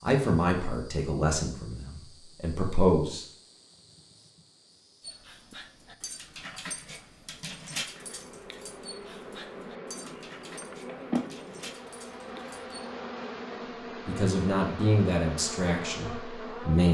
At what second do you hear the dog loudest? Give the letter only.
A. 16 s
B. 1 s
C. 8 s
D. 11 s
C.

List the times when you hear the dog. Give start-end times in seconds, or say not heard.
5.0-12.7.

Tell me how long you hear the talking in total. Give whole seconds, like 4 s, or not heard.
6 s.